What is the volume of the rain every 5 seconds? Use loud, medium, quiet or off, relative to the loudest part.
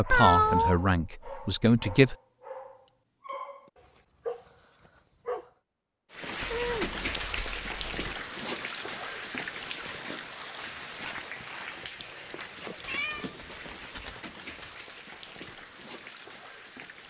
off, loud, medium, medium.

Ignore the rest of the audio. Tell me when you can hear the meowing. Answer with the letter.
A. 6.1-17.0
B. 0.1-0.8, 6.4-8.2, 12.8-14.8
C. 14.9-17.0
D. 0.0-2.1
B.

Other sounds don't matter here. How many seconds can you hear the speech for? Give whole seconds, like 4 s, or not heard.
2 s.